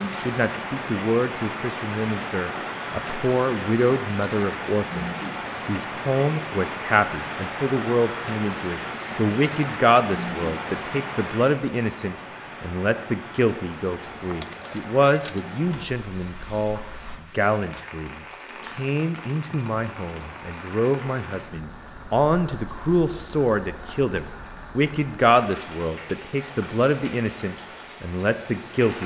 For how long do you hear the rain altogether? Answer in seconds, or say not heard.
29 s.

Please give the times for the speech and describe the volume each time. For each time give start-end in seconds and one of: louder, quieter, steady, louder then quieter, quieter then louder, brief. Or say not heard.
0.0-29.0 steady.